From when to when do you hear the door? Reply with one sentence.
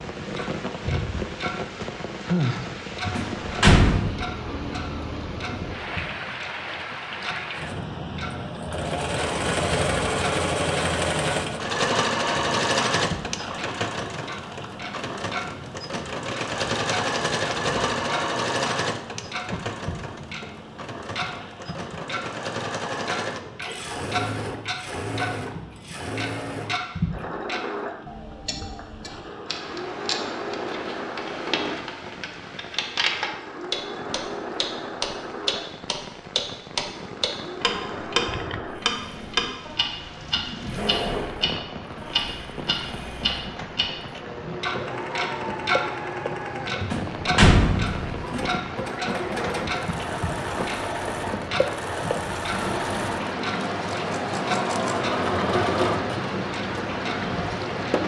The door can be heard from 3.0 to 4.2 s and from 46.8 to 48.5 s.